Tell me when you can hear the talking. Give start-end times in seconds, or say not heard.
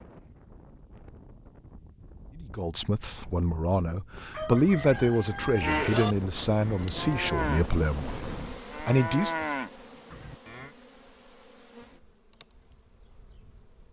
2.4-9.6.